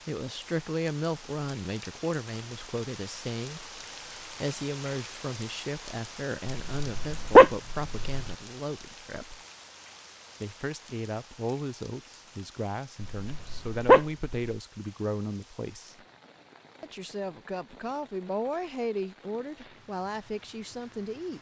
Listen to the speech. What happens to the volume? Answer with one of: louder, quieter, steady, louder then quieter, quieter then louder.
steady.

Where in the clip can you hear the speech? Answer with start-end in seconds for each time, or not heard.
0.1-9.4, 10.4-15.9, 16.8-21.3.